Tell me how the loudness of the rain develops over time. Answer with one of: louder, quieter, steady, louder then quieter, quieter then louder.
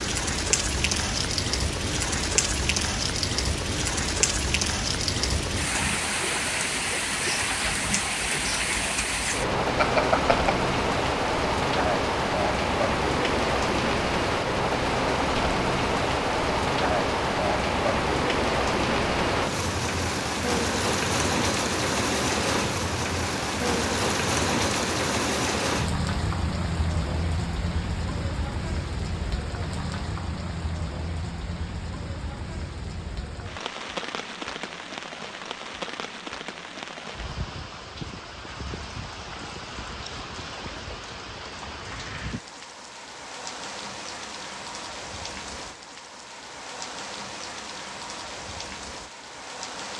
quieter.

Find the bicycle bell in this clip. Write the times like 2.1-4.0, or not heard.
9.8-10.6.